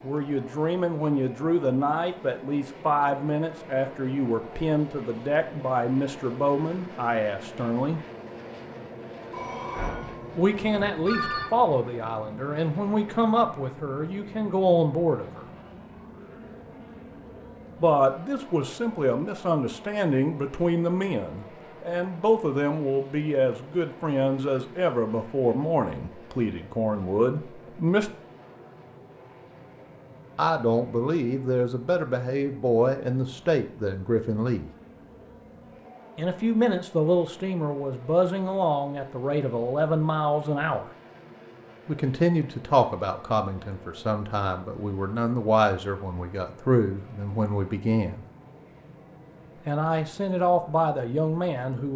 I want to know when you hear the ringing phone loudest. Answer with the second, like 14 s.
11 s.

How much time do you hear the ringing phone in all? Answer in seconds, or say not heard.
2 s.